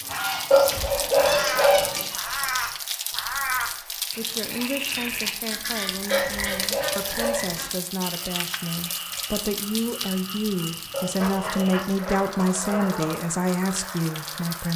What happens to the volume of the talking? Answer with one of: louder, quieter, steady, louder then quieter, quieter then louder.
louder.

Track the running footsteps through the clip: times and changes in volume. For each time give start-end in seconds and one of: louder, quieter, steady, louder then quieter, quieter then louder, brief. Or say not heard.
not heard.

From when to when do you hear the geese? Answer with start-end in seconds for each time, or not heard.
0.1-2.8, 4.9-7.7, 11.2-13.2.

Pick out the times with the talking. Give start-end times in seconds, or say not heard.
4.0-14.7.